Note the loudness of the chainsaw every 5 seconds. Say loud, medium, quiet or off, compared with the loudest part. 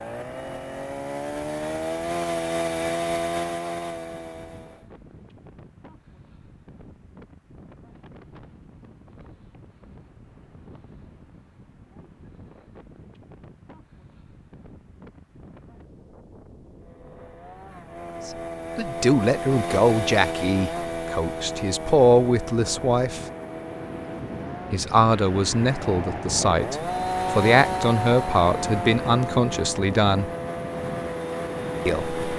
loud, off, off, loud, loud, loud, loud.